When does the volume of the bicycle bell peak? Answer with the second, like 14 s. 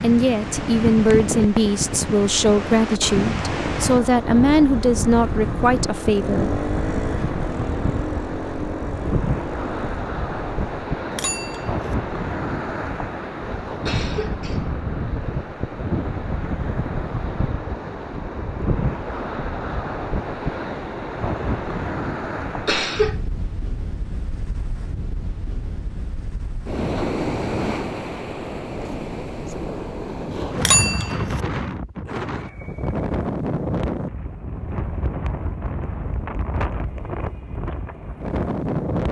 31 s.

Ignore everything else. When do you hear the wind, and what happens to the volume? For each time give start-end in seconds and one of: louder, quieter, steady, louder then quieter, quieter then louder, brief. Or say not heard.
0.0-39.0 steady.